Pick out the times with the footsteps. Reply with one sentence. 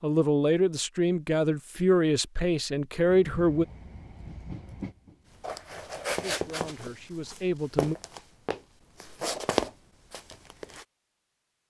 You can hear the footsteps from 5.3 to 10.8 s.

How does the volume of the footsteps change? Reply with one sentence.
The loudness of the footsteps goes down, then up.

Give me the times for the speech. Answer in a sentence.
You can hear the speech from 0.0 to 3.6 s and from 6.2 to 8.0 s.